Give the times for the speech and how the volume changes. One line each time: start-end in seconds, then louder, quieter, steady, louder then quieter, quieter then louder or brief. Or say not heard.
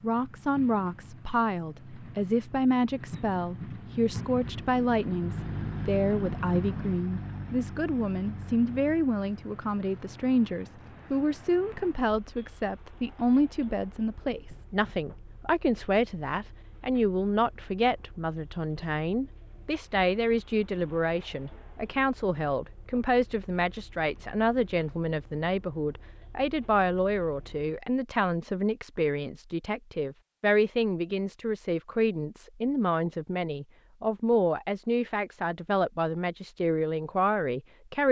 0.0-38.0 steady.